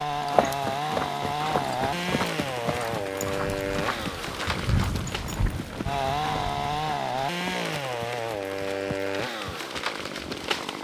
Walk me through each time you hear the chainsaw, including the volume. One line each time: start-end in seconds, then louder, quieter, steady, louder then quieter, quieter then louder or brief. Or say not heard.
0.0-10.8 steady.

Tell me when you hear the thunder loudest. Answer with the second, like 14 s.
5 s.